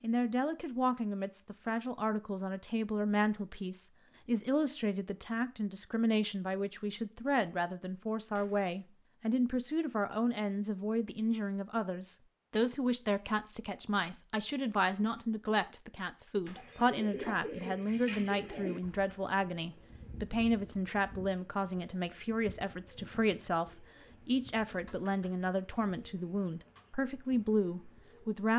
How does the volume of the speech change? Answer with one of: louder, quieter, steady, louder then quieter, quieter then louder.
steady.